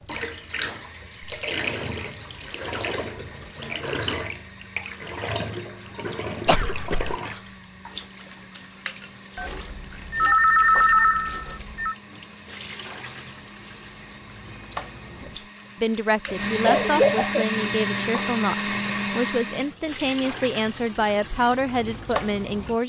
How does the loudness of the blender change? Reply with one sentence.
The loudness of the blender goes up.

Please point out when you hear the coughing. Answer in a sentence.
The coughing can be heard from 6.5 to 7.2 s and from 16.2 to 17.4 s.